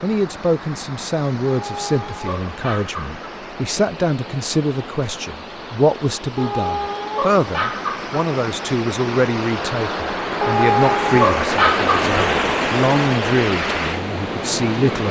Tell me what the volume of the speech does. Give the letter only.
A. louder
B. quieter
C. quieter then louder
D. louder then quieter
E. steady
E.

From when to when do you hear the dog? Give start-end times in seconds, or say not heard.
1.4-3.2, 6.3-8.2, 10.4-12.1.